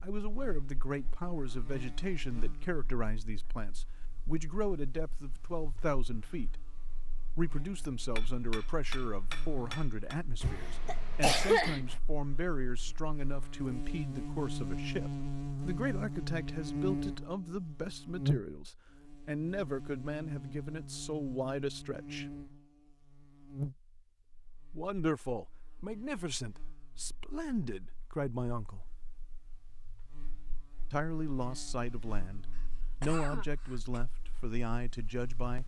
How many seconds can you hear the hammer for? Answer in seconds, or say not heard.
2 s.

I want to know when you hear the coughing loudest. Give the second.
11 s.